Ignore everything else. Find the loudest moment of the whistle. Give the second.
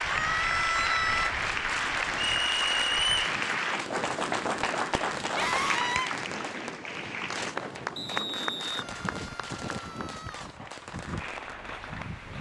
3 s.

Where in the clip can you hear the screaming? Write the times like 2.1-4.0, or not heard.
0.1-1.4, 5.3-6.1, 8.9-10.6.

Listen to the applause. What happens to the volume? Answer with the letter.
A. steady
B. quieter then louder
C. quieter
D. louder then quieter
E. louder
C.